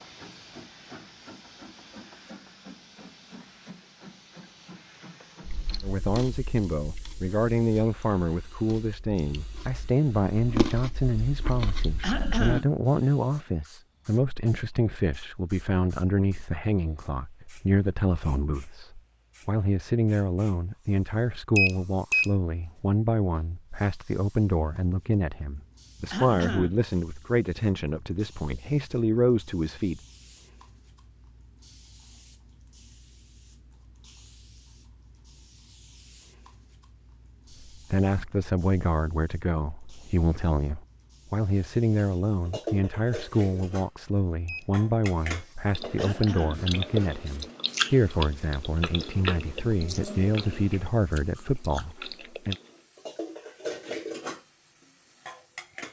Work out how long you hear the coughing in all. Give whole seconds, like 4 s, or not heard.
2 s.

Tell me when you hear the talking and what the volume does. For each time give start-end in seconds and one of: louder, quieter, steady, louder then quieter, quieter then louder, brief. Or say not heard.
5.8-30.0 steady
37.6-52.5 steady.